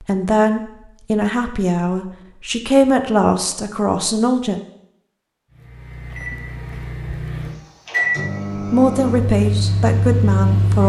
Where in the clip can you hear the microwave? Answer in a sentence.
You can hear the microwave from 5.5 to 10.8 s.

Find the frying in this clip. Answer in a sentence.
You can't hear the frying here.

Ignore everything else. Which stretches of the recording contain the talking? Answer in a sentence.
You can hear the talking from 0.0 to 4.6 s and from 8.6 to 10.8 s.